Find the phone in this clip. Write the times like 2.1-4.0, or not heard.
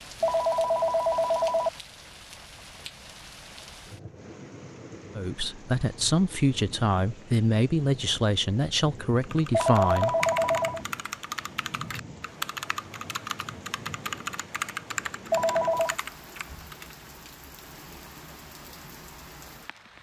0.2-1.7, 9.5-10.8, 15.3-15.9.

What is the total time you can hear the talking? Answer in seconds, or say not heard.
5 s.